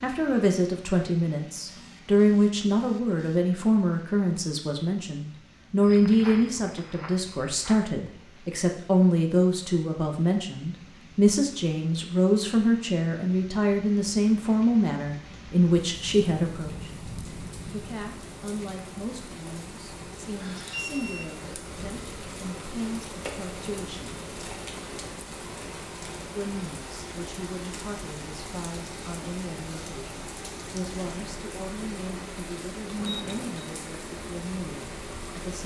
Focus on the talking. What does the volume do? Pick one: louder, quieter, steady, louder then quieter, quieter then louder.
quieter.